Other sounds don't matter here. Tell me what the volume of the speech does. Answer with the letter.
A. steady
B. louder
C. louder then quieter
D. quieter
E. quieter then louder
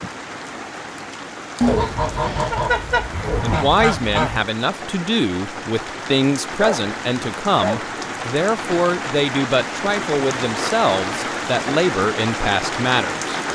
A.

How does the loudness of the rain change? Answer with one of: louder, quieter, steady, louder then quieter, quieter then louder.
louder.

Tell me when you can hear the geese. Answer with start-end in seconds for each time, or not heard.
1.6-4.5.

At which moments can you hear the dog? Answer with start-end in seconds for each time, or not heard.
6.5-7.8.